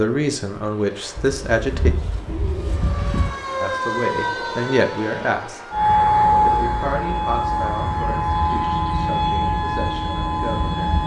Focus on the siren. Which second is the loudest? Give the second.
6 s.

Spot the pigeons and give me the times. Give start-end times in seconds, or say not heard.
1.1-3.4.